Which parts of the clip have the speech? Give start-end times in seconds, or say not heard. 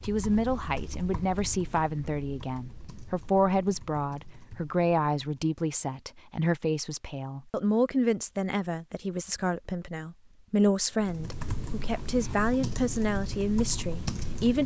0.0-14.6.